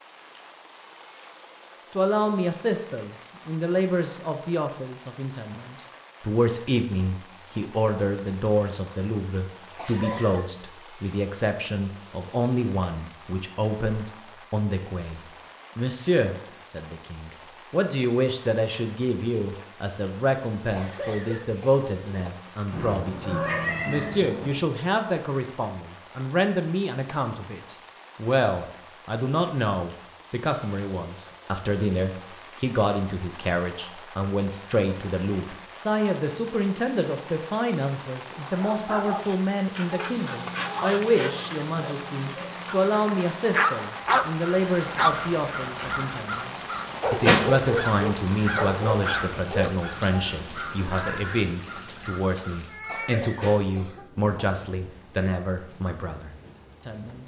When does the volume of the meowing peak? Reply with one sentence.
The volume of the meowing peaks at 24 seconds.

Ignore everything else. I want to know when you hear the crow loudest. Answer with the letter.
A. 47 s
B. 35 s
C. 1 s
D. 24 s
A.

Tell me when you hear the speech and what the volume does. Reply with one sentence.
You can hear the speech from 1.9 to 57.2 s, at a steady volume.